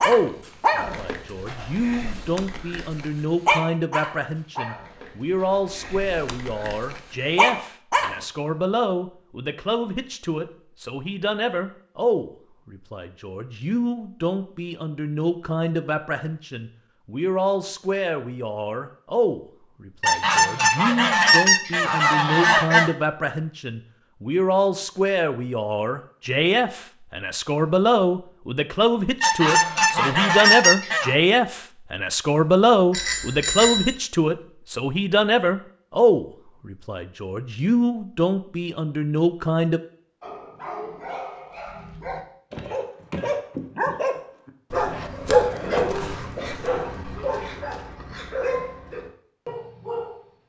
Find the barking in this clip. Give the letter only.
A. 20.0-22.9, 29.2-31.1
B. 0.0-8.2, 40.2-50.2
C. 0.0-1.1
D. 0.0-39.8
B.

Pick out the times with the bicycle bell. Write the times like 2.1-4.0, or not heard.
32.9-34.0.